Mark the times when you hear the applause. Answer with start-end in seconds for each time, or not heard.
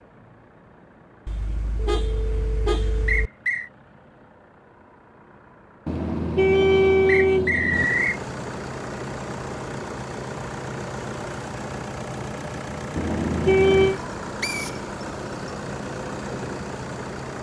not heard.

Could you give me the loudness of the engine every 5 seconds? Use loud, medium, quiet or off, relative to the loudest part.
quiet, loud, loud, loud.